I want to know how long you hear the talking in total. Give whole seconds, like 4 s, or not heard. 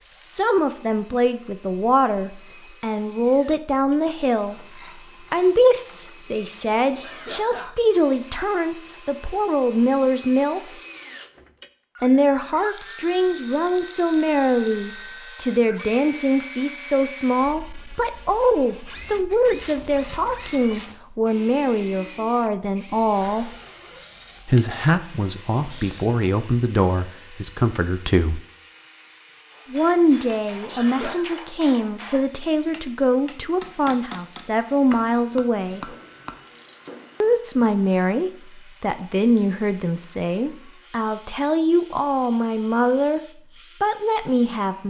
39 s.